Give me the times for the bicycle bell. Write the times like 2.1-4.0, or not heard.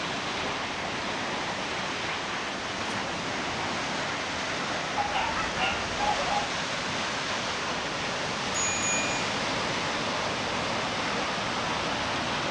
8.6-9.2.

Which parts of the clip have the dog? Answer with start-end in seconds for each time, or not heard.
5.0-6.5.